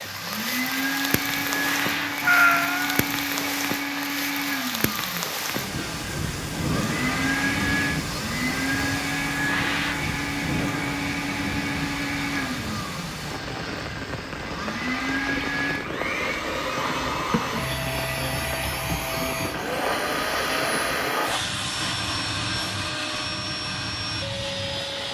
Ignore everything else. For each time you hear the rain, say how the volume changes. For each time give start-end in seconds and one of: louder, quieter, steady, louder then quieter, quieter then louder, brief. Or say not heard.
0.0-25.0 quieter.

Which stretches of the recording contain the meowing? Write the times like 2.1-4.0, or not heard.
2.2-3.0, 17.1-17.6.